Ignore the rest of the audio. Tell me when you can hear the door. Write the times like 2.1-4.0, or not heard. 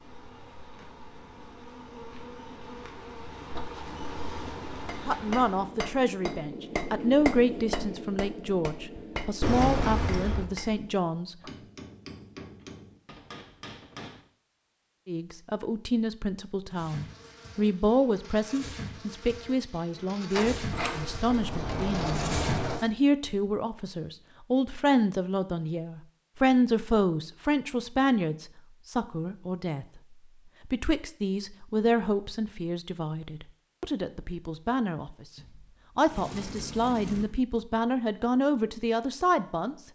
9.4-10.4, 20.3-22.8, 35.4-37.2.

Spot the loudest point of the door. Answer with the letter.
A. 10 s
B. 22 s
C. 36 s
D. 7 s
A.